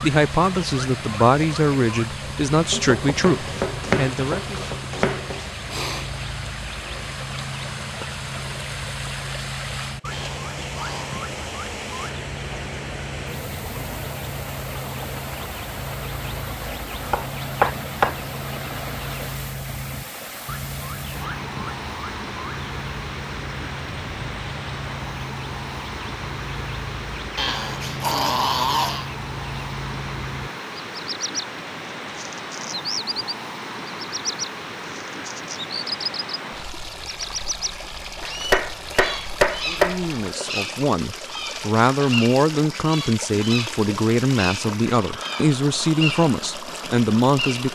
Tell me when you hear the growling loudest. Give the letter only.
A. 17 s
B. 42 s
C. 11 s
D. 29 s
D.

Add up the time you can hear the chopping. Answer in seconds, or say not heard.
6 s.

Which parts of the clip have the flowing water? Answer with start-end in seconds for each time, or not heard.
0.0-47.6.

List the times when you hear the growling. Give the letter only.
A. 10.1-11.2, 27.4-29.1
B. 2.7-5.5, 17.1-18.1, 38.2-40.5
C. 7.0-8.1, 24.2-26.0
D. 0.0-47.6
A.